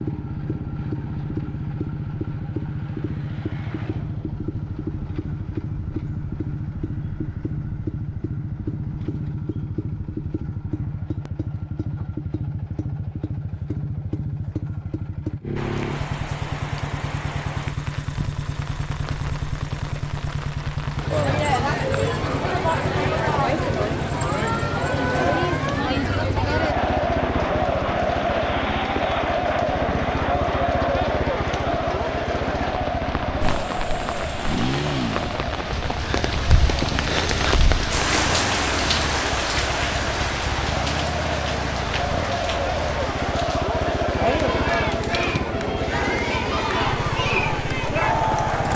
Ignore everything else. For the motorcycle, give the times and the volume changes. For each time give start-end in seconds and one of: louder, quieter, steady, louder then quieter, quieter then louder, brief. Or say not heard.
0.0-48.7 steady.